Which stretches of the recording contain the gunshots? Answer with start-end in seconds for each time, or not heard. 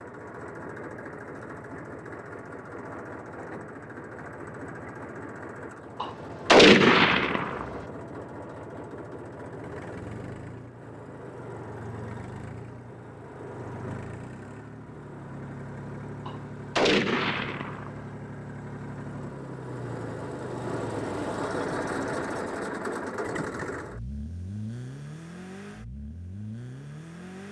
6.0-7.8, 16.2-18.1.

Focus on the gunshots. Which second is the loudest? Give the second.
7 s.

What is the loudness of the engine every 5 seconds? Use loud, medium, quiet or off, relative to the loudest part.
medium, medium, medium, medium, loud, medium.